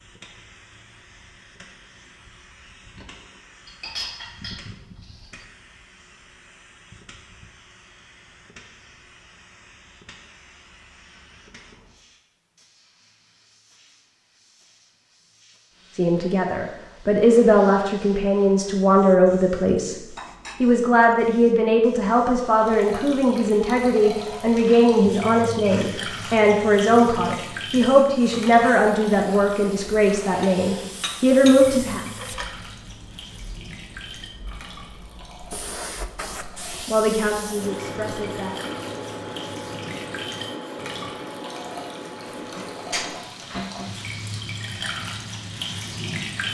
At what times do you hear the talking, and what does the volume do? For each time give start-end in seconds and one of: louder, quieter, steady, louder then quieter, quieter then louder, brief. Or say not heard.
15.9-32.0 steady
36.7-38.5 brief.